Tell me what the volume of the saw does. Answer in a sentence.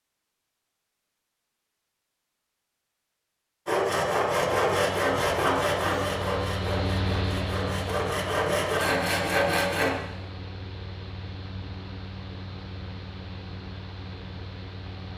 The loudness of the saw goes down, then up.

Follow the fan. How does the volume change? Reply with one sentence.
The volume of the fan goes down.